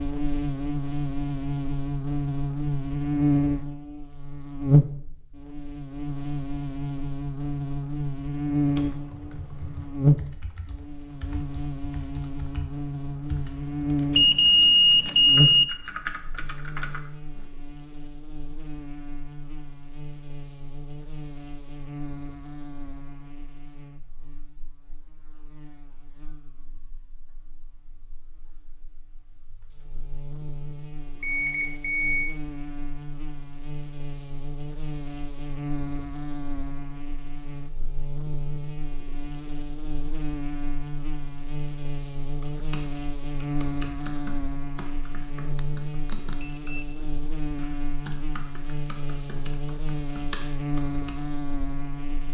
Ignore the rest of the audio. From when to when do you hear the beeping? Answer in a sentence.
The beeping can be heard from 14.2 to 15.7 s, from 31.2 to 32.3 s and from 45.5 to 46.9 s.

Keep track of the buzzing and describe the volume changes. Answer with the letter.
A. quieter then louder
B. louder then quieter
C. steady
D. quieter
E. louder
A.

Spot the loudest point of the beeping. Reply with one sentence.
The volume of the beeping peaks at 15 seconds.